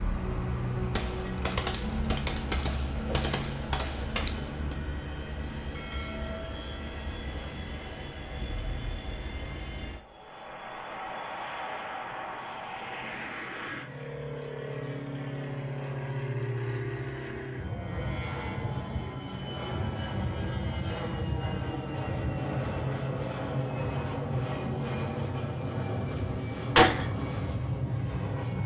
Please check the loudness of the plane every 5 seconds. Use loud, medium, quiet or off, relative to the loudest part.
loud, medium, medium, loud, loud, loud.